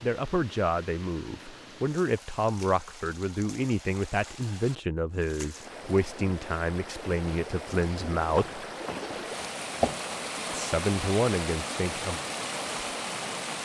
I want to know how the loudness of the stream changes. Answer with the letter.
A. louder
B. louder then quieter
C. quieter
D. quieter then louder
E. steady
A.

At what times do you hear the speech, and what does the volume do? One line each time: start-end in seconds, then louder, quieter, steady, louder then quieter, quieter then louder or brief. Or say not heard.
0.0-8.7 steady
10.5-12.2 brief.